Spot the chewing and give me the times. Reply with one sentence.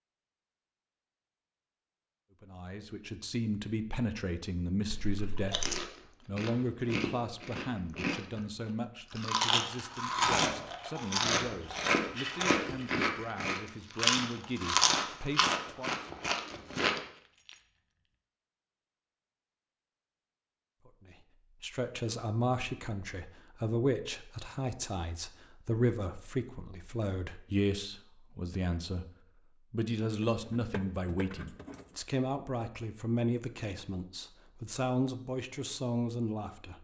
You can hear the chewing from 5.2 to 17.0 s.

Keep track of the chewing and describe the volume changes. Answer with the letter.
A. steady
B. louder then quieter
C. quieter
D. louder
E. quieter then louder
D.